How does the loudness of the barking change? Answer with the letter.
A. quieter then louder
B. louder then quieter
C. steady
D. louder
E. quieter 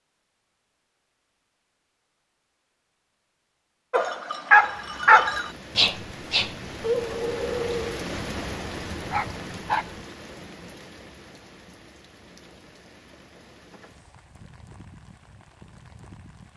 E.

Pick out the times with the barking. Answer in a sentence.
The barking can be heard from 3.9 to 10.0 s.